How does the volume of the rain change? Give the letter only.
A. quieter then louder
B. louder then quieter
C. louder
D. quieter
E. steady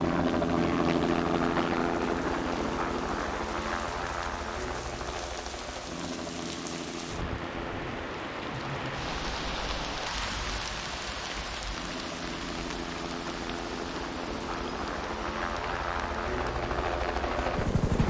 B.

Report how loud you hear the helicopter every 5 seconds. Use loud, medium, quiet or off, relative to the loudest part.
loud, medium, medium, loud.